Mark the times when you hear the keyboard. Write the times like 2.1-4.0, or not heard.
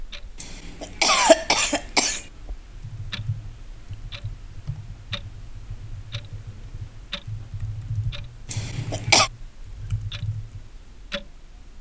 2.7-10.7.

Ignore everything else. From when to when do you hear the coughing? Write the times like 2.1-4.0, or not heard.
0.4-2.2, 8.5-9.3.